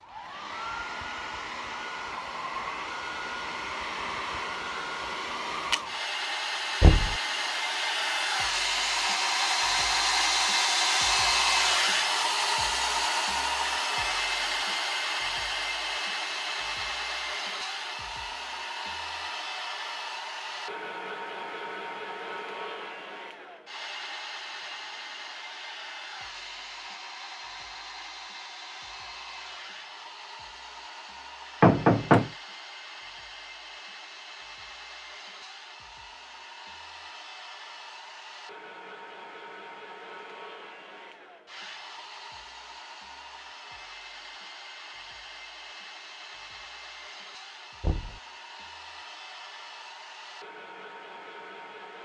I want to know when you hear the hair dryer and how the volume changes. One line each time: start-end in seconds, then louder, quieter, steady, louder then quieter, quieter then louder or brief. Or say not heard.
0.0-52.0 quieter.